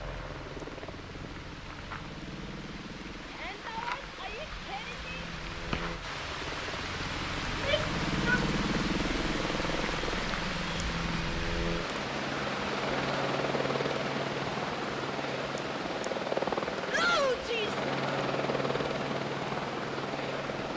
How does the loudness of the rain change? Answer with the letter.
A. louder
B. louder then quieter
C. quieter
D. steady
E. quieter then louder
B.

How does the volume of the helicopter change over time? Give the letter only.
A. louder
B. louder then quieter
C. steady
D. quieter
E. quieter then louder
A.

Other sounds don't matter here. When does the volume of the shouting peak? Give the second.
17 s.